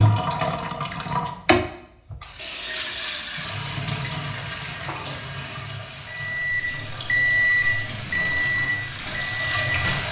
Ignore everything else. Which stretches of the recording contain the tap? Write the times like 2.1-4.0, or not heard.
0.0-10.0.